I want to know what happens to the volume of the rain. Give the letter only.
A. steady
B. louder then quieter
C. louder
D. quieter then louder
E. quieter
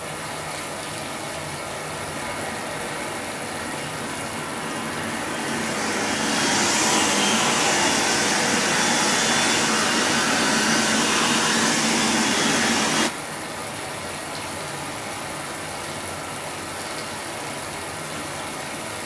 A.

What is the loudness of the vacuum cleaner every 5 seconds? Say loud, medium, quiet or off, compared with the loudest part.
quiet, loud, loud, off.